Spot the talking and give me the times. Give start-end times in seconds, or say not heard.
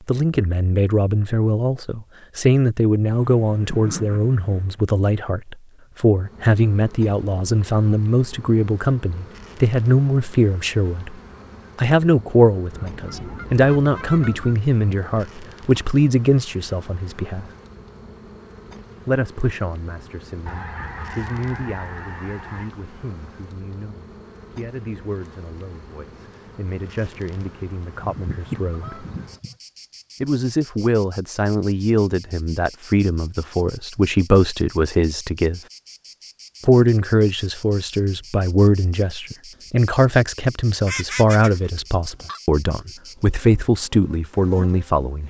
0.1-11.2, 11.8-17.5, 19.1-29.1, 30.2-35.6, 36.6-45.2.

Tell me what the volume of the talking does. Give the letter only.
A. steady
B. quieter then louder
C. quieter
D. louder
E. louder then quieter
B.